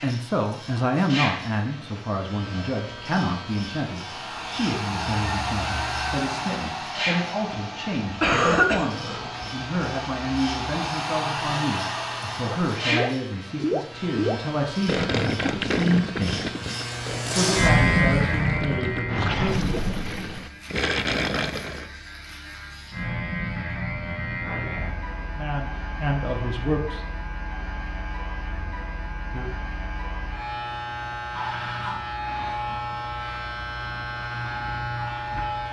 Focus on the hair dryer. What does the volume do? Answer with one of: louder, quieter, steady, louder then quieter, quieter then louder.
quieter then louder.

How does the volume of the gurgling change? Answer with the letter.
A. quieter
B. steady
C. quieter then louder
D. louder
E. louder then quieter
C.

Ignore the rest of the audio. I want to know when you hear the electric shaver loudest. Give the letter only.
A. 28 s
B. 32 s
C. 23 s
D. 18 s
D.